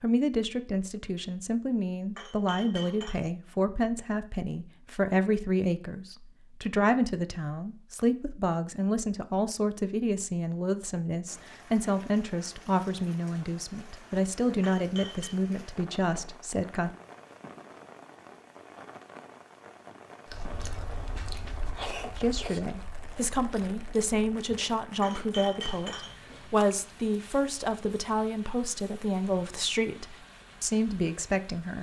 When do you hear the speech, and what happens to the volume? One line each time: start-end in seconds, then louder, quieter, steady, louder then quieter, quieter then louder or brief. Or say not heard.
0.0-16.9 steady
22.1-31.7 steady.